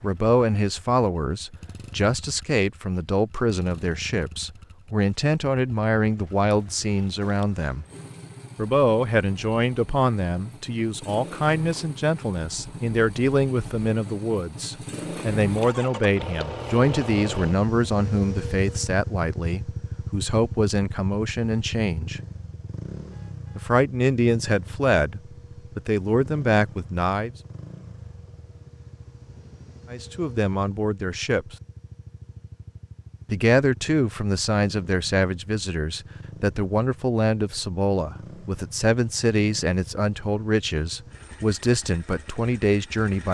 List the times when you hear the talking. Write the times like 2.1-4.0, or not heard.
0.0-7.8, 8.6-22.2, 23.6-27.3, 29.9-31.6, 33.3-43.3.